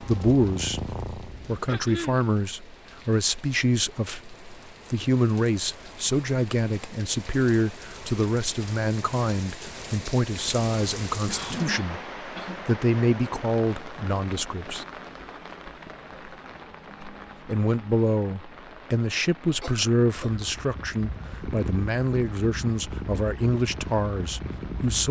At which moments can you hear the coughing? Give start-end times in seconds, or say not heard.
1.6-2.2, 11.2-12.7, 19.6-20.4.